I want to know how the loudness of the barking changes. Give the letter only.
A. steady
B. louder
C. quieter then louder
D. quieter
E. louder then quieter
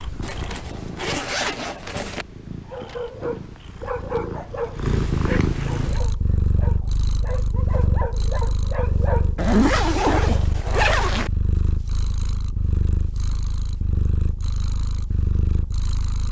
C.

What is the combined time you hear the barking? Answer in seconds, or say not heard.
7 s.